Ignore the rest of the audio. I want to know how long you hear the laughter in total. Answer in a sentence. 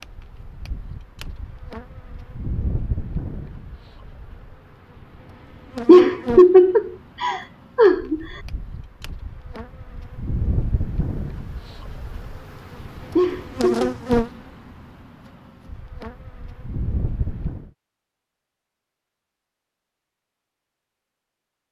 You can hear the laughter for 3 seconds altogether.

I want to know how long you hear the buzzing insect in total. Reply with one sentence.
You can hear the buzzing insect for 18 seconds altogether.